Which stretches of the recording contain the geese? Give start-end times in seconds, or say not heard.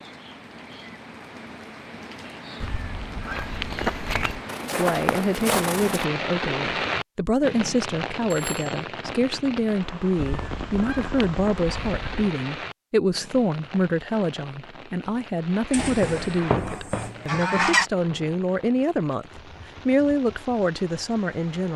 2.6-4.3, 10.2-12.3, 15.7-17.9.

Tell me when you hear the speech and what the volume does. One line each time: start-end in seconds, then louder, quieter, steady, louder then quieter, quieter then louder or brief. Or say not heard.
4.8-21.7 steady.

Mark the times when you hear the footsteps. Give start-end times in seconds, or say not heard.
3.2-6.0, 16.0-18.4.